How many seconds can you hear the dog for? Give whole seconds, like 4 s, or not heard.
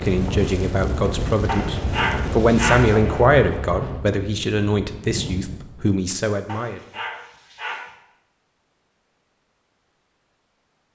3 s.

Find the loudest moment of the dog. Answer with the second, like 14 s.
3 s.